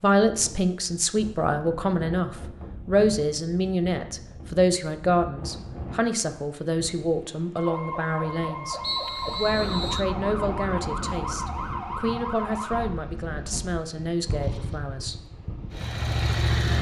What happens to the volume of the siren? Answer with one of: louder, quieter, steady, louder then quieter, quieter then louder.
steady.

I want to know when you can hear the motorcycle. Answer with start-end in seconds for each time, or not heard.
14.2-16.7.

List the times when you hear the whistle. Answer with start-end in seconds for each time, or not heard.
8.8-10.1.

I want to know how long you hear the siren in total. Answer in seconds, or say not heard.
5 s.